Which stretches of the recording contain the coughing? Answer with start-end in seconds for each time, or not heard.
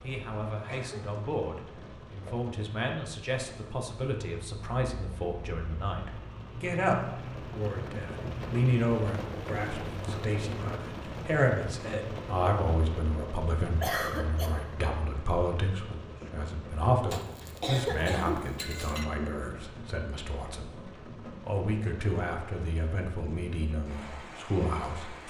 0.6-1.2, 13.8-14.6, 17.1-19.1.